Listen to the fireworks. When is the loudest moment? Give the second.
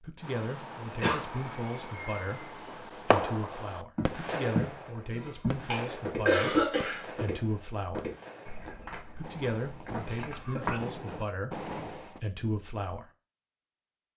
3 s.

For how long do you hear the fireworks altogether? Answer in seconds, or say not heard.
12 s.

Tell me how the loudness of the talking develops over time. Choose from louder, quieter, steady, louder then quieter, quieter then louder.
steady.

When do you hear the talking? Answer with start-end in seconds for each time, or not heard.
0.0-8.1, 9.2-13.1.